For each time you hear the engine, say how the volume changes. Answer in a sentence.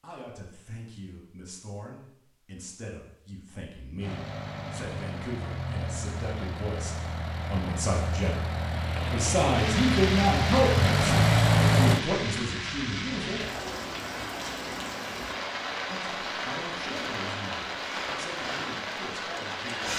The engine can be heard from 4.0 to 12.0 s, getting louder.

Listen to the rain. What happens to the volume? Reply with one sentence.
The volume of the rain stays about the same.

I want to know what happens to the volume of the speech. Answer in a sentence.
The loudness of the speech goes up, then down.